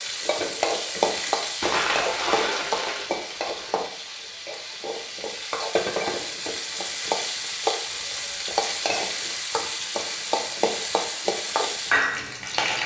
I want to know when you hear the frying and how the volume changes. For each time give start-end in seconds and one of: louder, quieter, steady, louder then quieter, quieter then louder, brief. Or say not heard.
0.0-12.8 quieter then louder.